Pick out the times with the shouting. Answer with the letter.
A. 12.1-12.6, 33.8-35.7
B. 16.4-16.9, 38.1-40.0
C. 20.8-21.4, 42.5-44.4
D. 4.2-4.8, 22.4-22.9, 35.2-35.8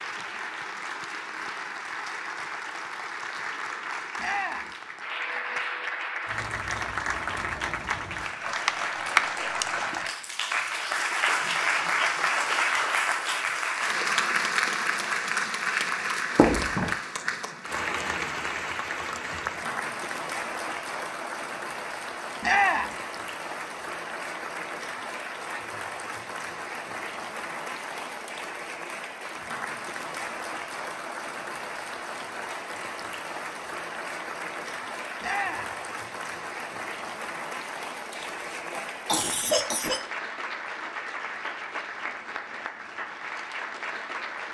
D.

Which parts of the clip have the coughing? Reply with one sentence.
You can hear the coughing from 16.4 to 16.9 s and from 38.1 to 40.0 s.